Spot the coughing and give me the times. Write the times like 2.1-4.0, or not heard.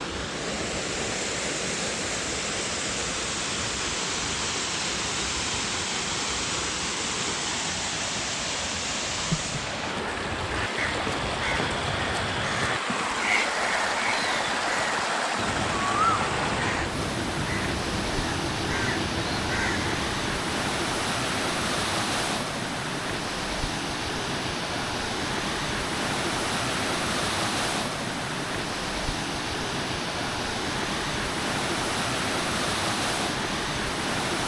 not heard.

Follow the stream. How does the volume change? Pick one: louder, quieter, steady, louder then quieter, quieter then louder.
steady.